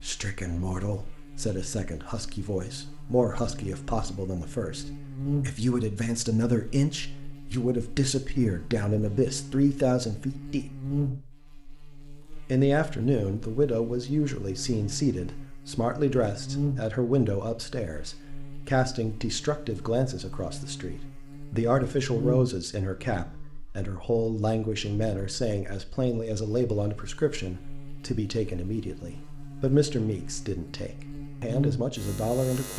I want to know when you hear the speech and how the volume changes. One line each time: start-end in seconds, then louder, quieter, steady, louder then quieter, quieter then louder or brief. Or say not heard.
0.0-10.7 louder
12.5-32.7 steady.